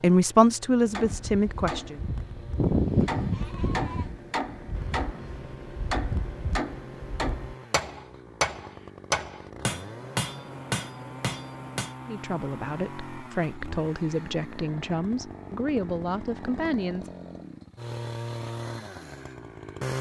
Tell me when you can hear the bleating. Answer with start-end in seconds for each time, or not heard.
2.5-4.2.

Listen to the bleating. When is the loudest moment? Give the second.
3 s.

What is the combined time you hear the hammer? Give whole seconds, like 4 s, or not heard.
11 s.